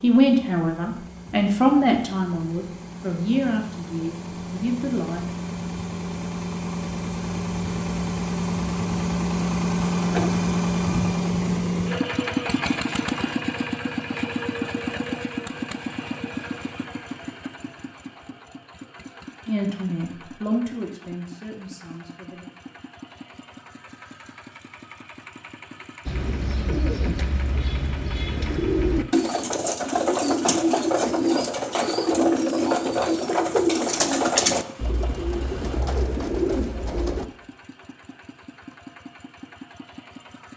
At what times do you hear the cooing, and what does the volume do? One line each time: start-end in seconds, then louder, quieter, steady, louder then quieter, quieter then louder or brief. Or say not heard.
26.1-37.2 louder then quieter.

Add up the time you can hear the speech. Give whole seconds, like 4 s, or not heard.
8 s.